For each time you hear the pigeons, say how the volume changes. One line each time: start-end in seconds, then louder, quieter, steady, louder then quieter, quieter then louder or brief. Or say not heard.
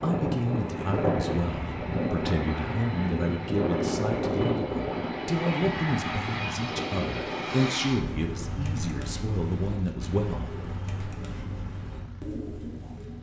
8.0-13.1 steady.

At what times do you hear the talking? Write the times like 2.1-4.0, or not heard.
0.0-10.5.